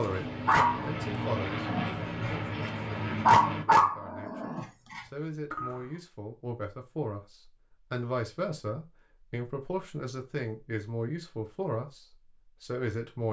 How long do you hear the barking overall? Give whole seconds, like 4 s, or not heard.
6 s.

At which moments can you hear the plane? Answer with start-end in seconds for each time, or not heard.
0.0-3.6.